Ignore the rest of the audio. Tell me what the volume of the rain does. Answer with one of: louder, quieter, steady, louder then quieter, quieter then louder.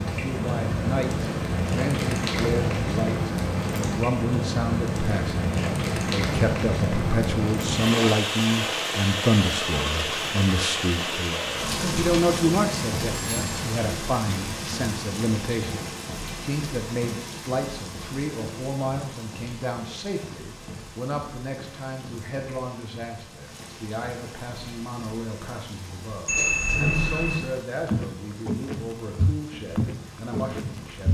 quieter.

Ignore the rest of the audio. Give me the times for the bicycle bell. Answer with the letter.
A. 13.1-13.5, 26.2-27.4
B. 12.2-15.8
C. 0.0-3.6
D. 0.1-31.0
A.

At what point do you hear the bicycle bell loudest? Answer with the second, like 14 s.
27 s.